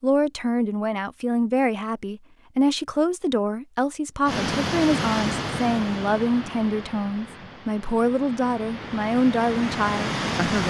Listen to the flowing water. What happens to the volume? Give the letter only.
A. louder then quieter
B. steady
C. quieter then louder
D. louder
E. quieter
C.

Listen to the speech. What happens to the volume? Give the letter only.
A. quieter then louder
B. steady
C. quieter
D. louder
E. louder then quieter
B.